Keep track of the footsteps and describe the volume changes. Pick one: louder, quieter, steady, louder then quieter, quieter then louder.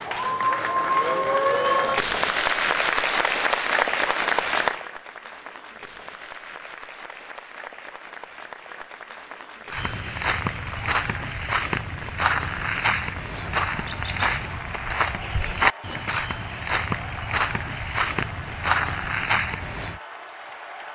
steady.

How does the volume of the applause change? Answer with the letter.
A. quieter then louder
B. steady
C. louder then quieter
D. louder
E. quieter
E.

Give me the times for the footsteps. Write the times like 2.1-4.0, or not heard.
9.7-20.0.